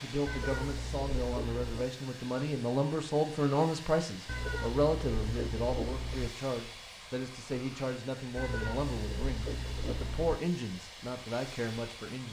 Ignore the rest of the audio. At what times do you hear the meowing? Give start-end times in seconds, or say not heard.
0.2-1.9, 4.2-6.3, 8.3-10.4.